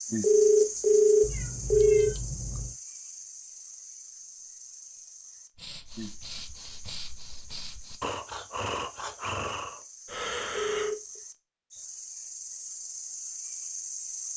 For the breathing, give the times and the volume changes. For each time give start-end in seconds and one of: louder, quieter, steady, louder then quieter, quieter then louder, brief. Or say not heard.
5.5-10.9 louder.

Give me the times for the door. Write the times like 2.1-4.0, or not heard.
not heard.